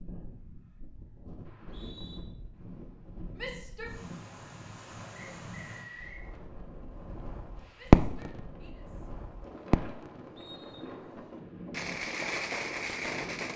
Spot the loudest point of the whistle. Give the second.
6 s.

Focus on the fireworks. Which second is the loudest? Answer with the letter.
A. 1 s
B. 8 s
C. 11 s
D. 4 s
B.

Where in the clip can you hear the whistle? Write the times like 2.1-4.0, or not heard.
1.4-2.2, 5.2-6.2, 10.3-10.9.